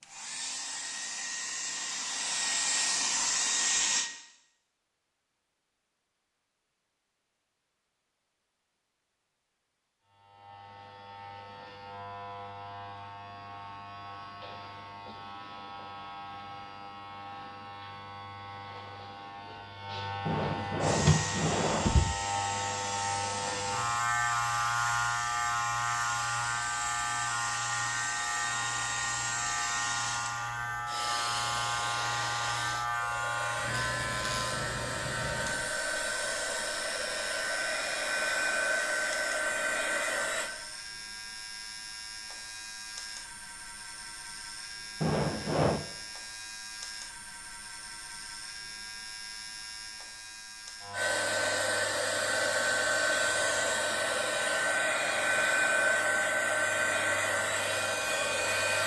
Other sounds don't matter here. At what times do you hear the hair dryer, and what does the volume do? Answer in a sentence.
You can hear the hair dryer from 0.0 to 4.1 s, getting louder; from 20.8 to 40.5 s, getting louder; and from 50.9 to 58.8 s, at a steady volume.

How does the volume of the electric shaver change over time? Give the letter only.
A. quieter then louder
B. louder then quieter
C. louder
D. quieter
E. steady
B.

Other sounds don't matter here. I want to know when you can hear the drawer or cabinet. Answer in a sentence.
You can hear the drawer or cabinet from 20.2 to 22.1 s and from 45.0 to 45.9 s.